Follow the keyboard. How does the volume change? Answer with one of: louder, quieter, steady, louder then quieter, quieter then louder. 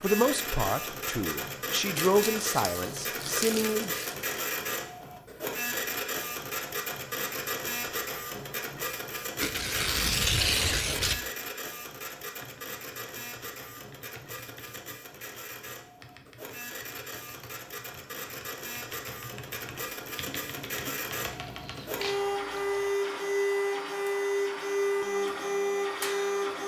louder.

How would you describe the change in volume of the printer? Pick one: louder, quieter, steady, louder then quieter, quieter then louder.
quieter then louder.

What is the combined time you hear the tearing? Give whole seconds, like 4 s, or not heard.
6 s.